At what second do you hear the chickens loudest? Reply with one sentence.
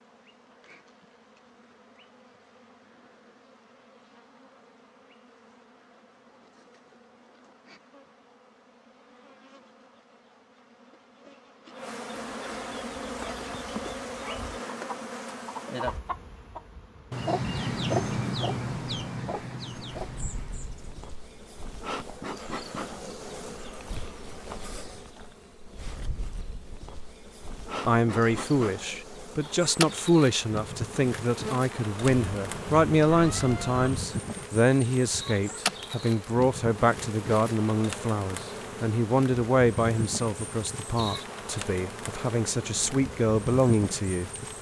The loudest moment of the chickens is at 18 seconds.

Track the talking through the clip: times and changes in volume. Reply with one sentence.
The talking can be heard from 27.8 to 44.3 s, at a steady volume.